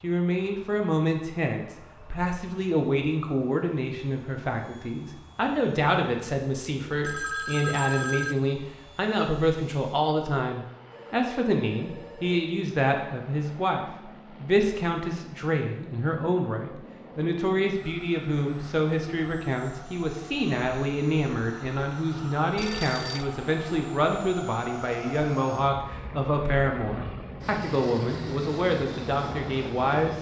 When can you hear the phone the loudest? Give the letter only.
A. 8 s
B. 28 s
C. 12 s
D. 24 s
A.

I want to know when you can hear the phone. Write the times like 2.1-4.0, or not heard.
7.0-8.3, 10.9-12.4, 22.6-23.2.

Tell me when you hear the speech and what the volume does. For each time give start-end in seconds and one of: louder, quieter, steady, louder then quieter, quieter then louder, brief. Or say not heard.
0.0-30.1 steady.